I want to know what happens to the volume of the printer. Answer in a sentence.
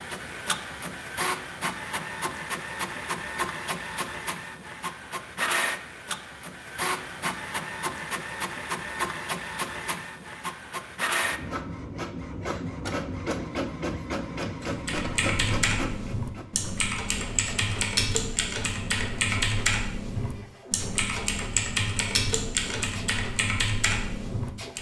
The volume of the printer goes down.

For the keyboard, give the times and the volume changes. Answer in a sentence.
You can hear the keyboard from 14.7 to 24.7 s, at a steady volume.